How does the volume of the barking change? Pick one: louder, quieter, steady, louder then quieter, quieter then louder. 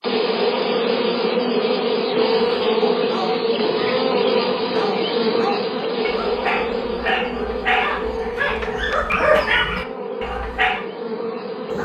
louder.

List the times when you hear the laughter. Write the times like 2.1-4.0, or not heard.
not heard.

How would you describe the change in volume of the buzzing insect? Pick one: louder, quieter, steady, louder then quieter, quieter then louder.
quieter.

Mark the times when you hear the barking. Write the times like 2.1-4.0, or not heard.
2.3-10.8.